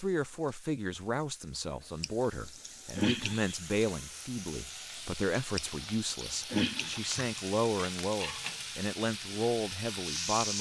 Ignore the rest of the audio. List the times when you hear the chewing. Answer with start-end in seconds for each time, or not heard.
2.0-3.6, 5.5-7.3.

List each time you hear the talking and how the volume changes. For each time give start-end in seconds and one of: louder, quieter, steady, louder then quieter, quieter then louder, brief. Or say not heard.
0.0-10.5 steady.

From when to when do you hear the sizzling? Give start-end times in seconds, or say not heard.
0.0-10.5.